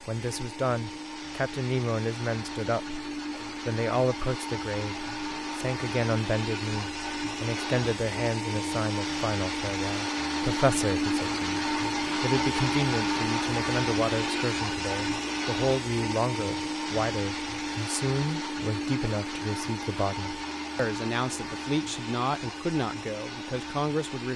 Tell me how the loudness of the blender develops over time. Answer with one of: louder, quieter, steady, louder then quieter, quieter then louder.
louder then quieter.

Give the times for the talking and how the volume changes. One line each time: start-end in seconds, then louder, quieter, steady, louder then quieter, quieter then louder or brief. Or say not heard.
0.0-24.3 steady.